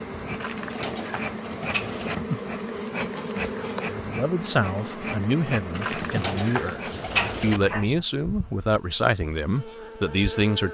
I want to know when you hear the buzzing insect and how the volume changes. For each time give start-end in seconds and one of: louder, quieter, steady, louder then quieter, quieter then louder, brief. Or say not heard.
0.0-10.6 quieter.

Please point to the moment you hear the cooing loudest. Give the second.
7 s.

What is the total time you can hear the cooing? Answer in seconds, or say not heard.
4 s.